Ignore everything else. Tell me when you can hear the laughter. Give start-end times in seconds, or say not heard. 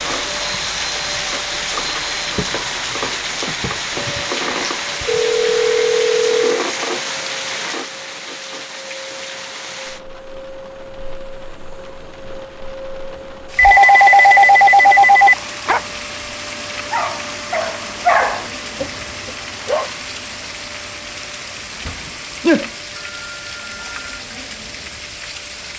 not heard.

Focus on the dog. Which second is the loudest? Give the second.
18 s.